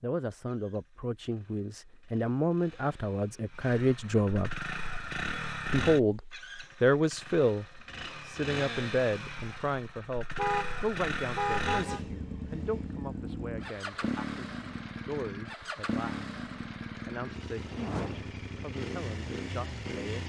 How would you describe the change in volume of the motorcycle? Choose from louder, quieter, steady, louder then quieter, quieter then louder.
louder.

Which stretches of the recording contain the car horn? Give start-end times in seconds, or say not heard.
10.3-12.0.